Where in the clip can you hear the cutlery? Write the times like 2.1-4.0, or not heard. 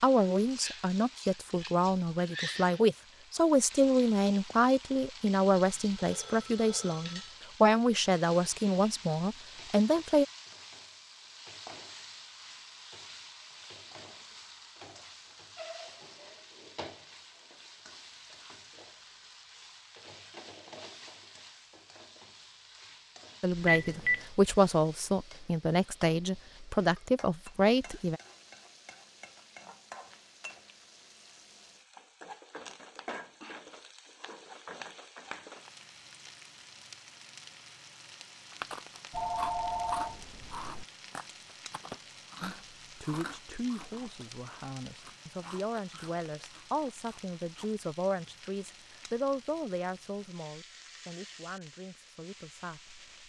not heard.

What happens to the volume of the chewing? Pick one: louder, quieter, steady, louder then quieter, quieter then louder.
quieter.